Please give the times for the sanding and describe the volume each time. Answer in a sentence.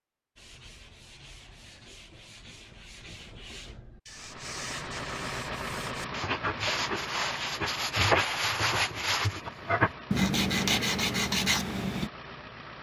The sanding can be heard from 0.3 to 12.1 s, getting louder.